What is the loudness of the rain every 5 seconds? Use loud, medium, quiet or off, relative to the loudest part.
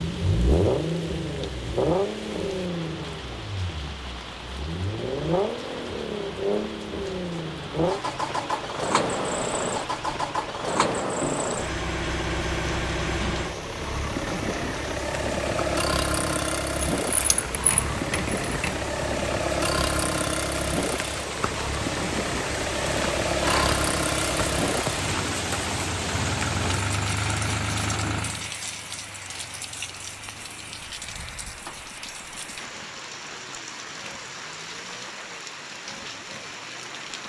medium, medium, medium, medium, loud, loud, medium, medium.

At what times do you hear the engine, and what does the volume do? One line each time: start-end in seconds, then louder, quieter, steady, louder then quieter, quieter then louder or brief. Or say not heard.
0.0-37.2 quieter.